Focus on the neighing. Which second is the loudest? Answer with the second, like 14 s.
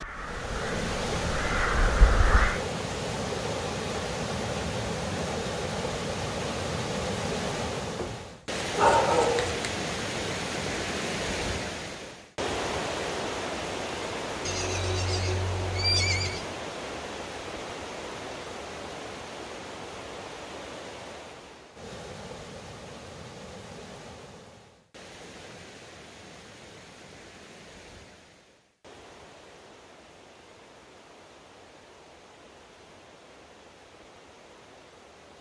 16 s.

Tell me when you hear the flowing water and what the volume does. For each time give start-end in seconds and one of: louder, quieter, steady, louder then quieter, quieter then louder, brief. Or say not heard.
0.0-35.3 quieter.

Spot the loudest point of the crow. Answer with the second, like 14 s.
2 s.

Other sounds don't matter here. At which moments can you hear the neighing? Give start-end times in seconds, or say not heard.
14.4-16.4.